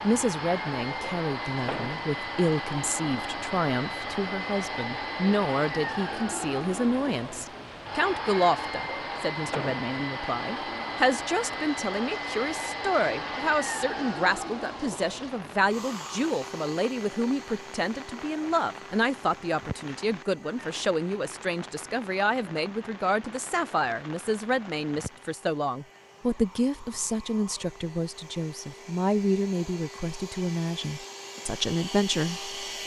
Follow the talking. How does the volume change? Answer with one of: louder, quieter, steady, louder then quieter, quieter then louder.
steady.